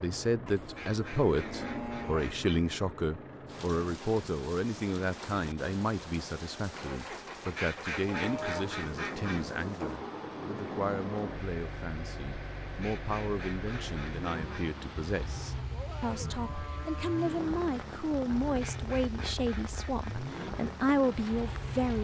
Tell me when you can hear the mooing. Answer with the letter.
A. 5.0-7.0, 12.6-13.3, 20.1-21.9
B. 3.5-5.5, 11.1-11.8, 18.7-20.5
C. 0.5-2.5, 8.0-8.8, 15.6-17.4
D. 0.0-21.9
C.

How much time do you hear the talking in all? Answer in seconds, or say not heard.
22 s.